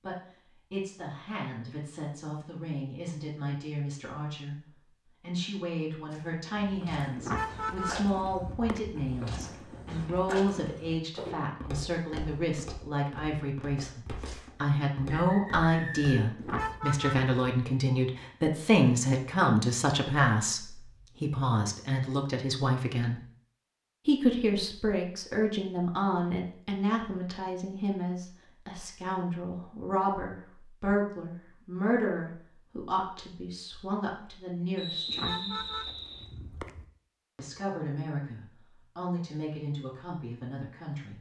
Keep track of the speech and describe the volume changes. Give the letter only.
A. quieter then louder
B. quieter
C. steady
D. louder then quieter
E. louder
D.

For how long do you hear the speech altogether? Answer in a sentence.
You can hear the speech for 37 seconds altogether.